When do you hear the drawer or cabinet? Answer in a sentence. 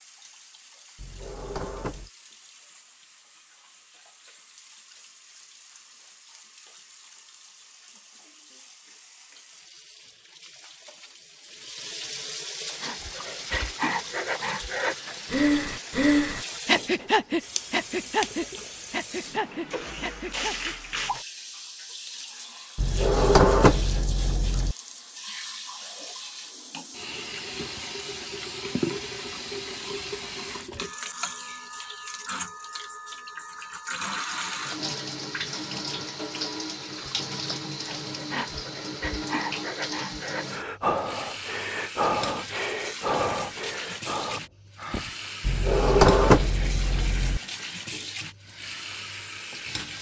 The drawer or cabinet can be heard from 0.9 to 2.1 s, from 22.8 to 24.8 s and from 45.4 to 47.4 s.